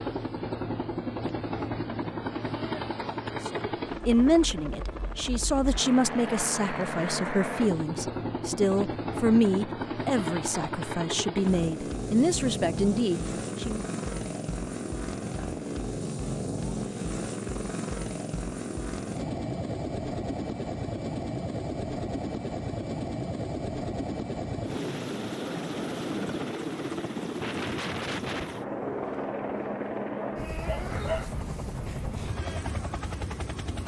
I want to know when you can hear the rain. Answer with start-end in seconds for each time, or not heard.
not heard.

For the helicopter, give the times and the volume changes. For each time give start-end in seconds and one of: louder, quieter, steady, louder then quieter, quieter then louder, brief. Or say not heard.
0.0-33.8 steady.